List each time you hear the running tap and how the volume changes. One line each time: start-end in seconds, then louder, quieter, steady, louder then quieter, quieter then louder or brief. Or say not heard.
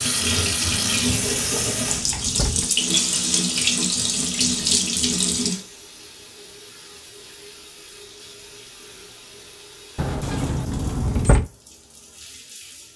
0.0-12.9 quieter.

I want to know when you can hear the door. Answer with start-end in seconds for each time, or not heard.
1.2-2.7, 9.9-11.4.